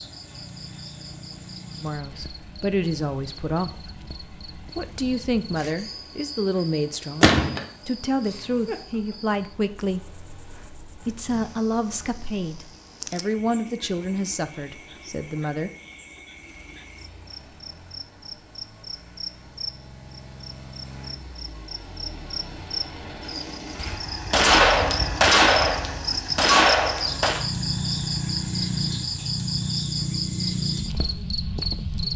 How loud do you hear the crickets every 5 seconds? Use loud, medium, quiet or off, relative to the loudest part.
quiet, quiet, quiet, quiet, medium, loud, loud.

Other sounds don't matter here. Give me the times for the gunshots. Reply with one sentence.
The gunshots can be heard from 7.2 to 7.7 s and from 24.3 to 27.4 s.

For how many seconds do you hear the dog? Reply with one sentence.
You can't hear the dog here.